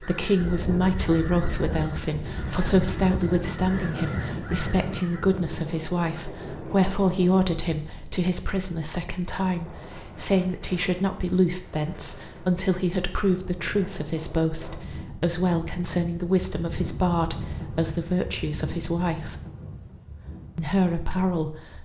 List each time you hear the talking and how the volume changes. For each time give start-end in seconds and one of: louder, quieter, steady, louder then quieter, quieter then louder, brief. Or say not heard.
0.0-19.4 steady
20.6-21.8 brief.